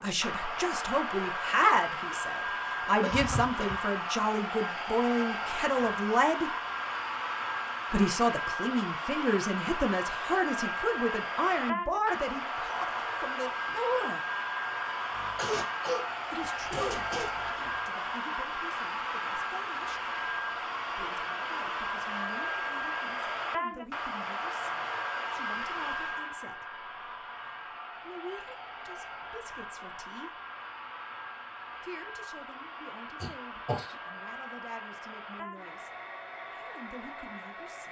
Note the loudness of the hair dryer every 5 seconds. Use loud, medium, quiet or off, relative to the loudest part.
loud, loud, loud, loud, loud, medium, medium, medium.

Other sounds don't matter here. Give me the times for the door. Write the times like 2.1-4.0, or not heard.
not heard.